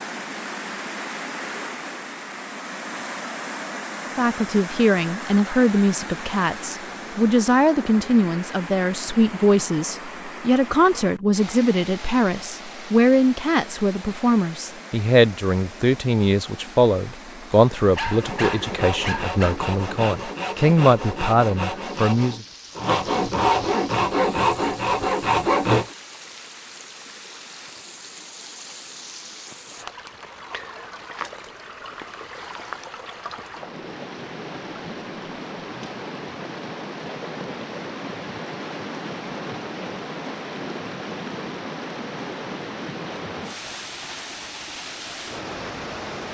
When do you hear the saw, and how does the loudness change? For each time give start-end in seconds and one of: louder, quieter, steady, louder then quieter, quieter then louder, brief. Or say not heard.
18.0-25.9 louder.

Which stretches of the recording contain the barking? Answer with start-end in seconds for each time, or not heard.
17.9-19.6.